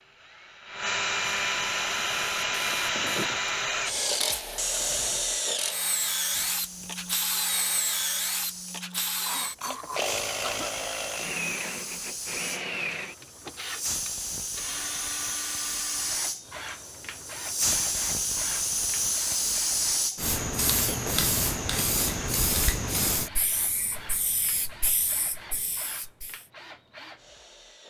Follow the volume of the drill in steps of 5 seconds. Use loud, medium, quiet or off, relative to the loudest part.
loud, loud, medium, quiet, quiet, quiet.